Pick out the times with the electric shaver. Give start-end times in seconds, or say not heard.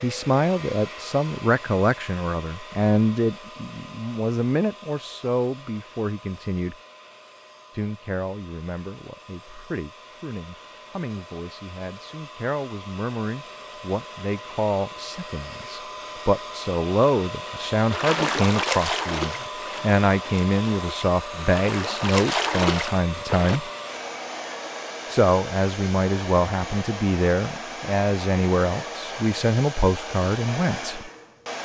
not heard.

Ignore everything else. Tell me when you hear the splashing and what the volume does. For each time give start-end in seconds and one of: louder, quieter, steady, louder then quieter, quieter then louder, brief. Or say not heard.
17.9-23.6 quieter then louder.